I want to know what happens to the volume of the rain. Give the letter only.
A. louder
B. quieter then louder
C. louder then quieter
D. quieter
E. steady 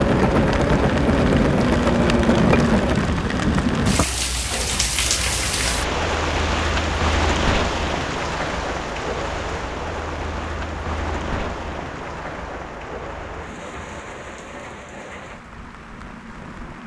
D.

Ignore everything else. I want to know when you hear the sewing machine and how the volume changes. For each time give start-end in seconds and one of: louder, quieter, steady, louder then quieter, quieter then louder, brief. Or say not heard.
0.0-4.0 quieter.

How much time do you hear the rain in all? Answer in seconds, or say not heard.
17 s.